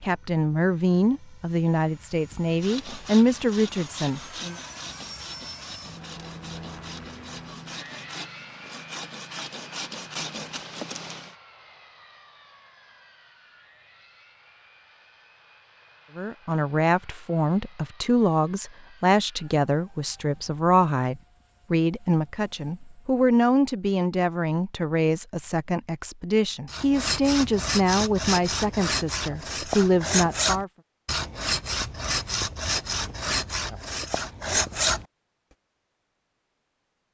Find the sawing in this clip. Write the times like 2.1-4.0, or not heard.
2.5-11.3, 26.6-35.0.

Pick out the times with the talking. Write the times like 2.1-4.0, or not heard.
0.0-4.5, 16.1-30.7.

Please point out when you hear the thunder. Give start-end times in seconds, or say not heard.
not heard.